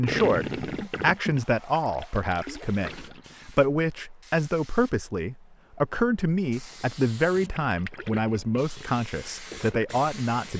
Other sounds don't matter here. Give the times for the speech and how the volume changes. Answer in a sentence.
The speech can be heard from 0.0 to 10.5 s, at a steady volume.